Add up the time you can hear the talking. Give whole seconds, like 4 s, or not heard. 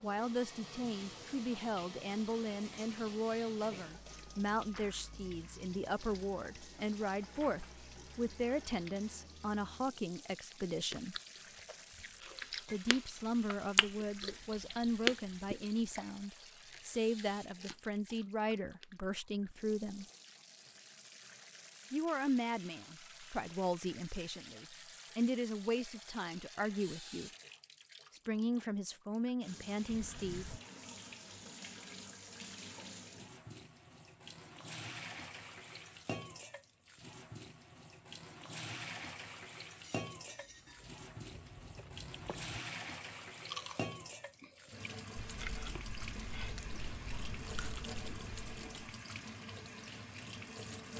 26 s.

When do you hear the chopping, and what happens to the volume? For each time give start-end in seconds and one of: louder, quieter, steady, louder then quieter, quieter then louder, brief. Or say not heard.
not heard.